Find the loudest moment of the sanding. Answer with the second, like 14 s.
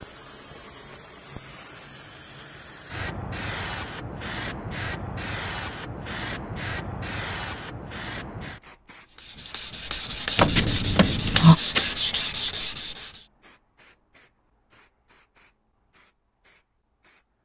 12 s.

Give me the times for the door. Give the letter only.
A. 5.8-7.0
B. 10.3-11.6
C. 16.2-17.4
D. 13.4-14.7
B.